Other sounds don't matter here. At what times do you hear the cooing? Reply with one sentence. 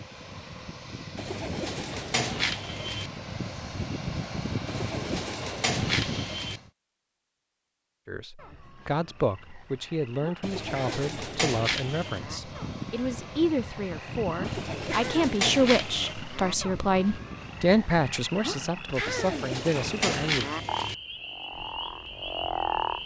You can hear the cooing from 1.1 to 3.1 s, from 4.7 to 6.6 s, from 10.4 to 12.2 s, from 14.4 to 16.1 s and from 19.1 to 20.9 s.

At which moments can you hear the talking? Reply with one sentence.
The talking can be heard from 8.1 to 20.5 s.